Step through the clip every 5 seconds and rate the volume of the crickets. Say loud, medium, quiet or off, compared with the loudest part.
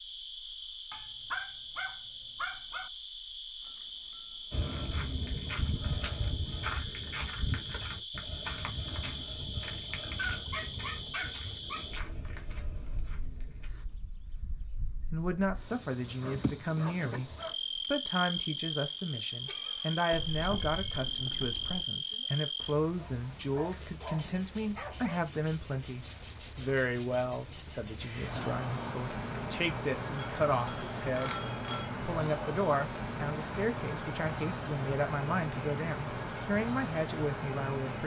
medium, medium, medium, loud, loud, loud, loud, loud.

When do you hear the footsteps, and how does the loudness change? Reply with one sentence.
You can hear the footsteps from 4.5 to 13.7 s, getting quieter.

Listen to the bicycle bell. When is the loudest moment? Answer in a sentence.
The loudest moment of the bicycle bell is at 21 seconds.